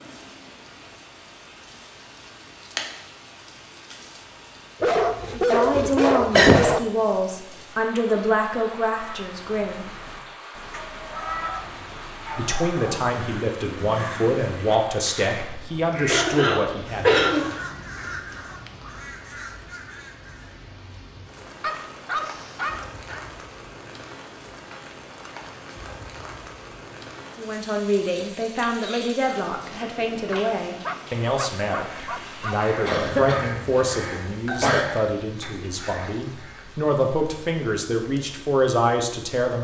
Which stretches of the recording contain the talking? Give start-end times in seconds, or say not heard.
5.3-9.8, 12.3-17.1, 27.4-39.5.